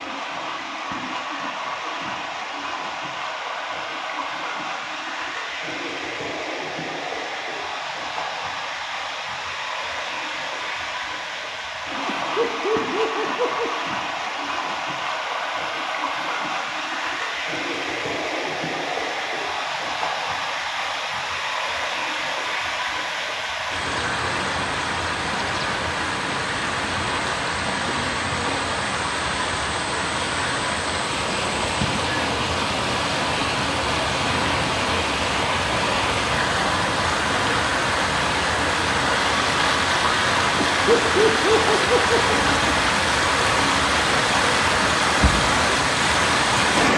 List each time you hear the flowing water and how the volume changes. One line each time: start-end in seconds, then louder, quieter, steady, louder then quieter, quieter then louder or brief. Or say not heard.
0.0-46.9 louder.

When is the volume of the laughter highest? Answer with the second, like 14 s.
41 s.